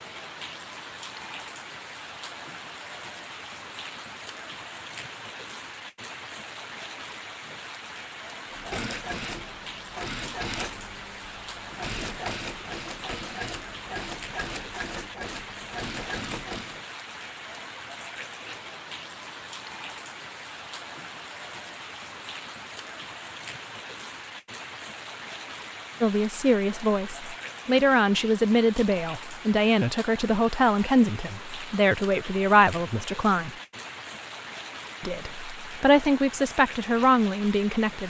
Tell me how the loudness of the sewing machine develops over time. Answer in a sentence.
The volume of the sewing machine stays about the same.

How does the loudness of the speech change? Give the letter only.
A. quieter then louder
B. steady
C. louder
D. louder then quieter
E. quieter
B.